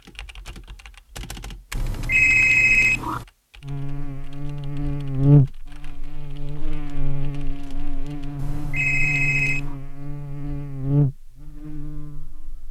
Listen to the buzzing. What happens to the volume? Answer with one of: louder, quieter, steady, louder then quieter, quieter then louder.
quieter then louder.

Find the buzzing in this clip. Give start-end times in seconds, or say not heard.
3.6-12.6.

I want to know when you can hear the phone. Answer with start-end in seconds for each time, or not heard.
1.7-3.2, 8.3-9.8.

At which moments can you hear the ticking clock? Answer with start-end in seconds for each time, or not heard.
not heard.